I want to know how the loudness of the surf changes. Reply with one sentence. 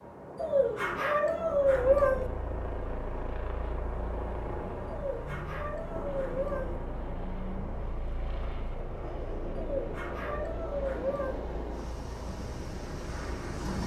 The volume of the surf stays about the same.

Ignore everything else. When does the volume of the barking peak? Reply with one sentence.
The loudest moment of the barking is at 2 seconds.